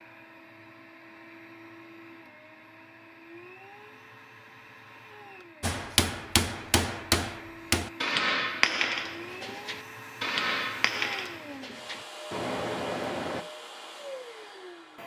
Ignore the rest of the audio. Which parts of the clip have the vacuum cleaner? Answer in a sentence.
The vacuum cleaner can be heard from 0.0 to 15.0 s.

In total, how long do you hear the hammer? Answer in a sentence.
The hammer can be heard for 8 seconds in total.